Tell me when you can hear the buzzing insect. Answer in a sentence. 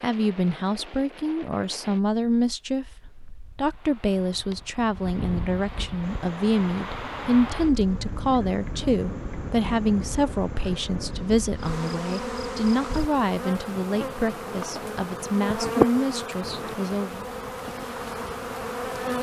The buzzing insect can be heard from 6.0 to 19.1 s.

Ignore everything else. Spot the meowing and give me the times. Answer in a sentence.
You can't hear the meowing here.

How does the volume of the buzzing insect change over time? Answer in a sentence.
The loudness of the buzzing insect goes up, then down.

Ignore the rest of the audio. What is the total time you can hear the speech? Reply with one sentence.
The speech can be heard for 17 seconds in total.